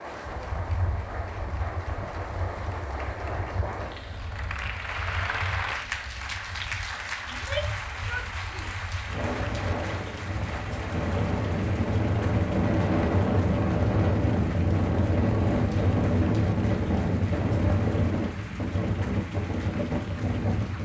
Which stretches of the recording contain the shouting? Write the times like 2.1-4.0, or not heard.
7.3-8.8.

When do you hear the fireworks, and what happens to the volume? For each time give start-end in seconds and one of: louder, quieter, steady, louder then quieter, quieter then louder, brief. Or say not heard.
not heard.